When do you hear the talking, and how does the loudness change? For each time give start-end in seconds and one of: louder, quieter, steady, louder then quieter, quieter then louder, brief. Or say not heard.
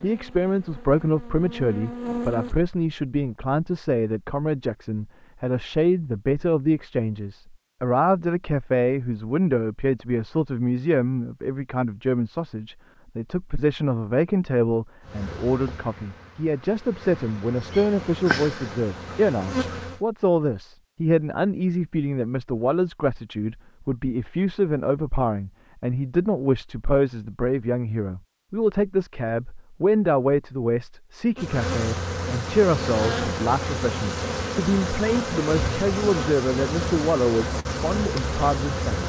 0.0-39.0 steady.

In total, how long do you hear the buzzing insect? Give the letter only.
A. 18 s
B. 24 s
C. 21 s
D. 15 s
D.